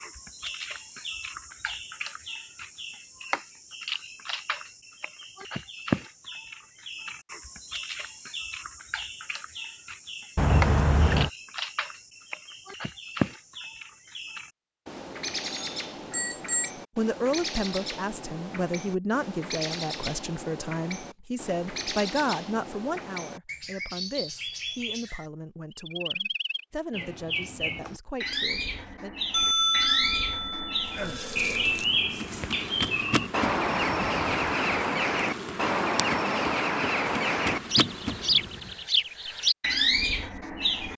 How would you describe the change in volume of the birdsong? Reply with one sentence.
The loudness of the birdsong goes up.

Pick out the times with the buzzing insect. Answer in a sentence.
The buzzing insect can be heard from 30.9 to 38.8 s.